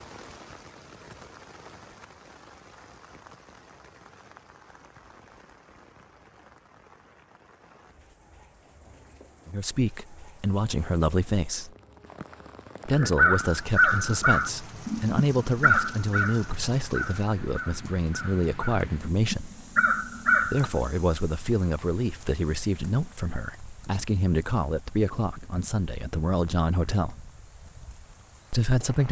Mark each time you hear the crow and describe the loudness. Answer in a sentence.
The crow can be heard from 12.9 to 20.7 s, getting quieter then louder.